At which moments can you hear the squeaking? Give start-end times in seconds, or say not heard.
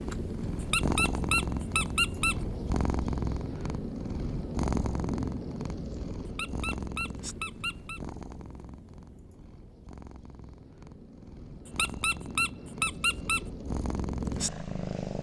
0.6-2.4, 6.2-8.0, 11.7-13.4.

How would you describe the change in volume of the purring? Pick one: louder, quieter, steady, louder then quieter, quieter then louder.
quieter then louder.